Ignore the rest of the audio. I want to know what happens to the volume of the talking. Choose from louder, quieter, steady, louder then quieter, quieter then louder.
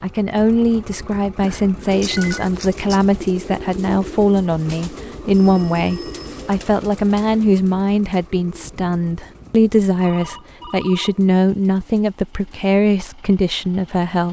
steady.